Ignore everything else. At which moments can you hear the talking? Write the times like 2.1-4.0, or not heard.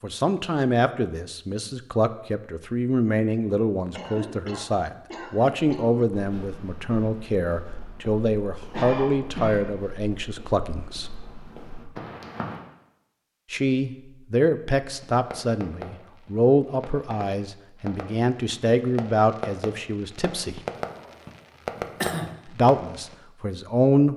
0.0-11.1, 13.5-20.6, 22.4-24.1.